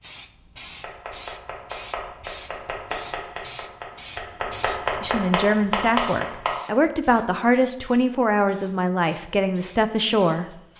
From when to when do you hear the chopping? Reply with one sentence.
The chopping can be heard from 0.8 to 6.5 s.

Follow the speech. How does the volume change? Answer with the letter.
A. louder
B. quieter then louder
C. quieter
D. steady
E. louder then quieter
D.